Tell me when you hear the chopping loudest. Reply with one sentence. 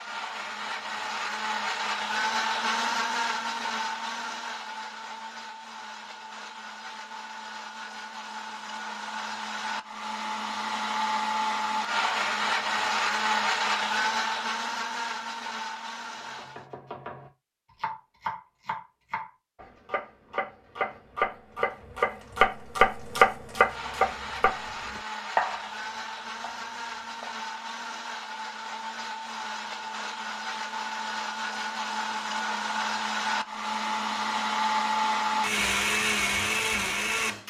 The loudest moment of the chopping is at 23 seconds.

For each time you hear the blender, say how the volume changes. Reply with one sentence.
You can hear the blender from 0.0 to 16.7 s, getting quieter then louder; and from 23.6 to 37.4 s, getting louder.